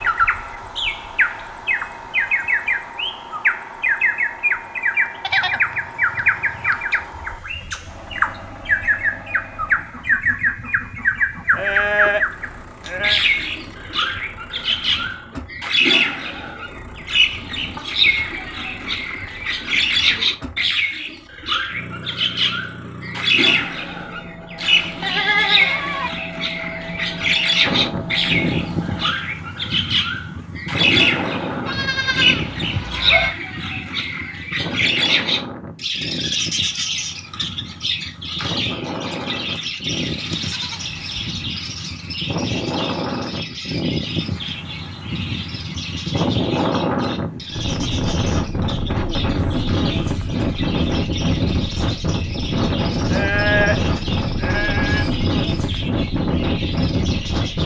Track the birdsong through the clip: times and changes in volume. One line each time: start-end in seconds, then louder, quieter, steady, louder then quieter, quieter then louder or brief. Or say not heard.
0.0-57.6 quieter.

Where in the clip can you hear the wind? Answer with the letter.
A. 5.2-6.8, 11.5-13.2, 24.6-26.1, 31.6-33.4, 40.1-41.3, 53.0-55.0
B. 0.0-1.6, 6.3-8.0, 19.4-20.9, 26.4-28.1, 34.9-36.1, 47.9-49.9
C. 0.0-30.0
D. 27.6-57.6
D.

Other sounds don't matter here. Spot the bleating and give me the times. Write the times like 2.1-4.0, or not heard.
5.2-6.8, 11.5-13.2, 24.6-26.1, 31.6-33.4, 40.1-41.3, 53.0-55.0.